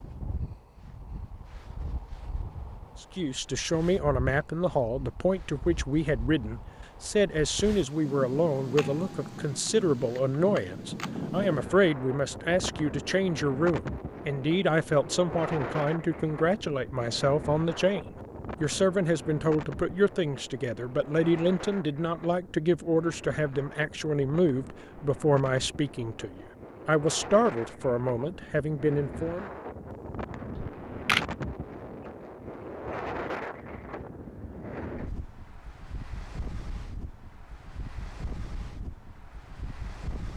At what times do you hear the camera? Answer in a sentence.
You can hear the camera from 8.8 to 11.1 s and from 30.6 to 31.2 s.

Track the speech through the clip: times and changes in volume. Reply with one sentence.
The speech can be heard from 3.0 to 29.5 s, at a steady volume.